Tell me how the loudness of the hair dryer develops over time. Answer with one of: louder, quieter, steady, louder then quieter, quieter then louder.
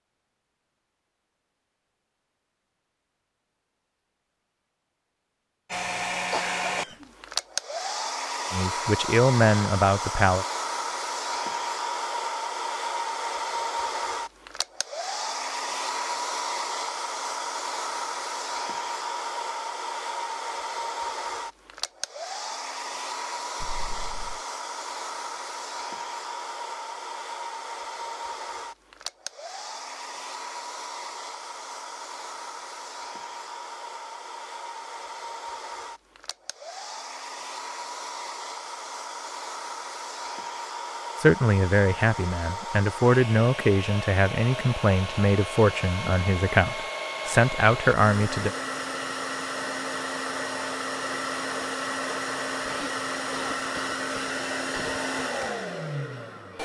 quieter then louder.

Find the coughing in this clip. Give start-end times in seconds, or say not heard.
6.3-7.0, 23.6-24.4, 52.6-55.0.